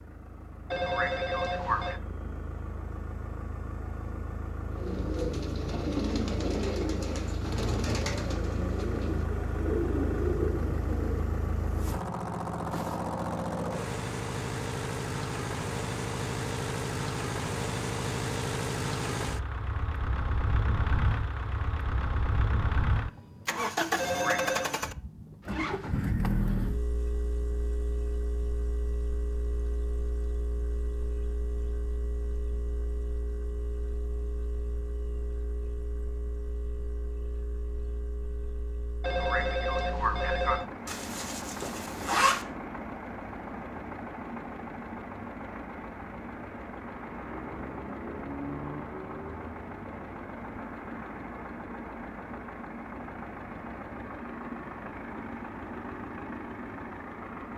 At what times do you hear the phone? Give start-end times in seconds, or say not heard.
0.7-2.0, 23.9-24.7, 39.0-40.6.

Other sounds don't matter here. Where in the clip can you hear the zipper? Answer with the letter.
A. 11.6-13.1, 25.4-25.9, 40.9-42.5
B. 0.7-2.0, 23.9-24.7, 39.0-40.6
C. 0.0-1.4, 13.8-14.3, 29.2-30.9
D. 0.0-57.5
A.